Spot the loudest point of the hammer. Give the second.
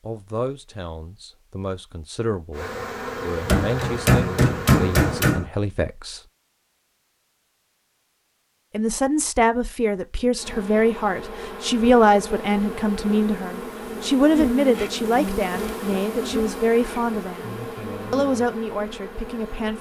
5 s.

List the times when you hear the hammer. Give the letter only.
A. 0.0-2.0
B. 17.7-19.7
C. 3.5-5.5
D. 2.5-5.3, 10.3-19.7
C.